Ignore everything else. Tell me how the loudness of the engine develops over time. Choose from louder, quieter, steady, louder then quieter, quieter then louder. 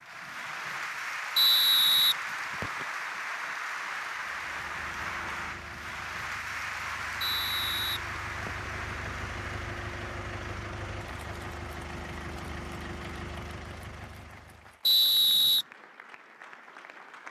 louder.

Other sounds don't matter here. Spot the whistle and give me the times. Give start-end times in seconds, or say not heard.
1.4-2.9, 7.2-8.7, 14.8-15.7.